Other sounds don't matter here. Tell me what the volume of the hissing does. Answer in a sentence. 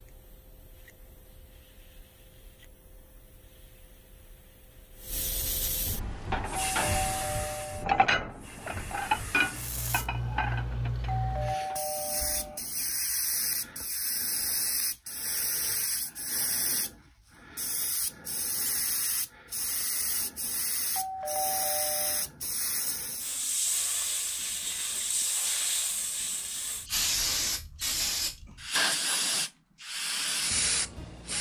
The loudness of the hissing goes up.